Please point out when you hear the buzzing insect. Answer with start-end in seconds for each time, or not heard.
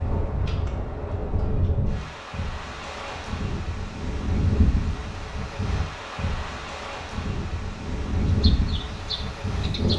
8.4-9.9.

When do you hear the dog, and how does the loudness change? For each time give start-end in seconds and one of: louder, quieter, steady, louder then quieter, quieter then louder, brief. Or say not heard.
not heard.